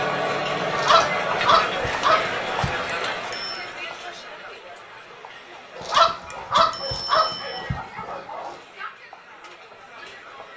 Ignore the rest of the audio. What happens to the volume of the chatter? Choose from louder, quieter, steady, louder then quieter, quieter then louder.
quieter.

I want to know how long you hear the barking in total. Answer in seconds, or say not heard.
5 s.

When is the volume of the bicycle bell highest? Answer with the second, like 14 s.
7 s.